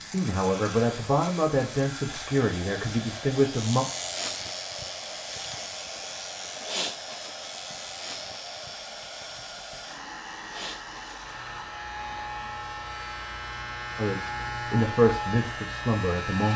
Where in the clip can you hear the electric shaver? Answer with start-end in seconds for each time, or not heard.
0.0-16.5.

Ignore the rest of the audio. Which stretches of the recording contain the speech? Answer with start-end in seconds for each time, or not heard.
0.0-3.9, 13.9-16.5.